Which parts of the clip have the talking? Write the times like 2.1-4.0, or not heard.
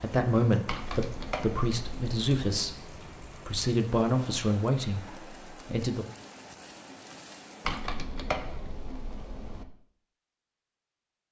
0.0-6.0.